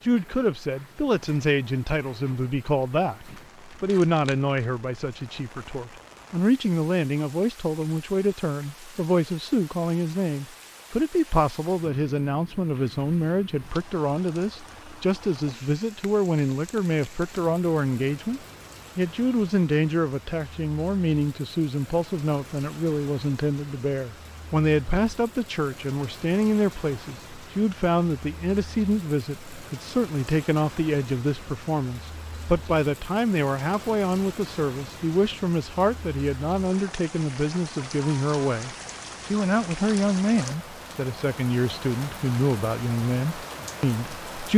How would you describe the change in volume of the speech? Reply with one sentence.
The loudness of the speech stays about the same.